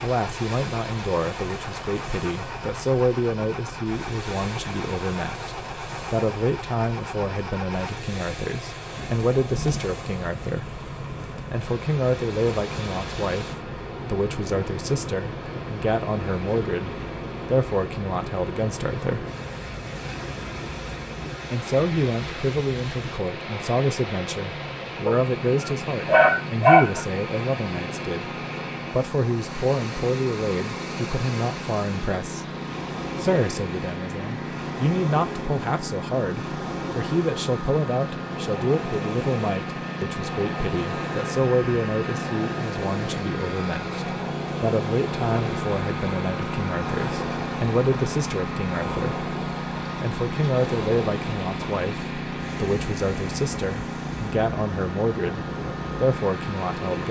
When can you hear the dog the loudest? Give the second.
27 s.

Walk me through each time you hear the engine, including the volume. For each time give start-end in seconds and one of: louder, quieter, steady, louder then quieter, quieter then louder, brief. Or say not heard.
0.0-57.0 louder.